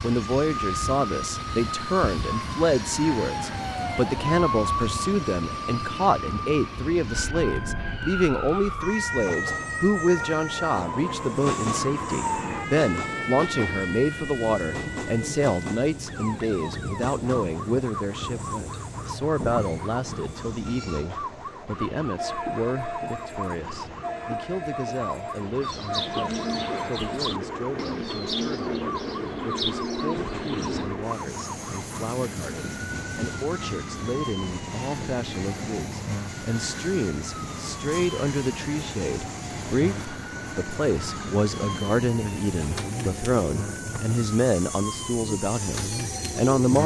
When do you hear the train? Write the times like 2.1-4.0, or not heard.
0.0-46.8.